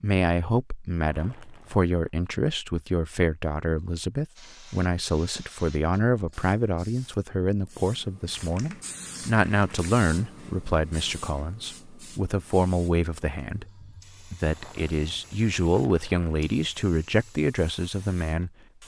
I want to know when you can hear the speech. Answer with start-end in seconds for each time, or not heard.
0.0-13.7, 14.3-18.5.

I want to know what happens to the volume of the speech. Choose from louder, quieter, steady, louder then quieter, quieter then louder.
steady.